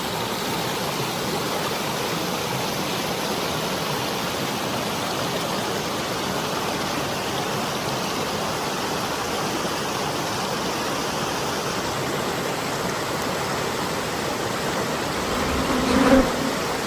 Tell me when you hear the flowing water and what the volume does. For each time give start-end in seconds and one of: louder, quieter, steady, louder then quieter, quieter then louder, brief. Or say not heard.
0.0-16.8 steady.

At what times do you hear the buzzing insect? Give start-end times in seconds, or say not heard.
15.2-16.6.